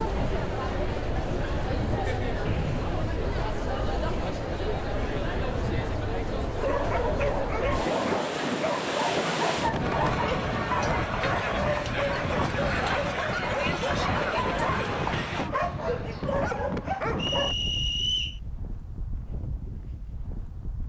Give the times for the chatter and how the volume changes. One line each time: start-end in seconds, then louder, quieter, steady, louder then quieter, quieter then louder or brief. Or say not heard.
0.0-15.5 steady.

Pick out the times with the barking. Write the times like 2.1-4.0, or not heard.
6.5-17.6.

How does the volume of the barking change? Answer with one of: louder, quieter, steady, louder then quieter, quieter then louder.
steady.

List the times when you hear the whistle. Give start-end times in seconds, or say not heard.
2.5-3.1, 17.1-18.4.